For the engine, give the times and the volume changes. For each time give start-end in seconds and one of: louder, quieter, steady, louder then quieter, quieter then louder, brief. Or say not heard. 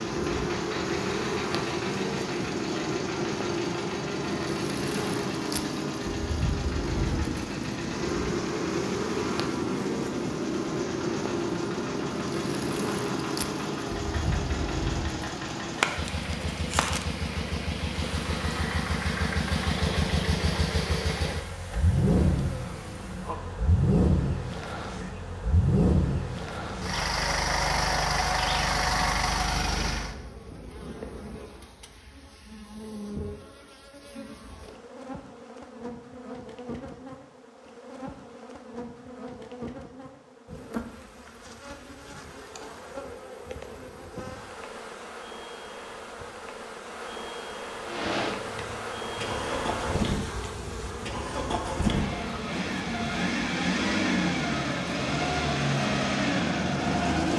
0.0-30.1 louder
47.9-57.3 louder.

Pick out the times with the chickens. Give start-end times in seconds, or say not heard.
not heard.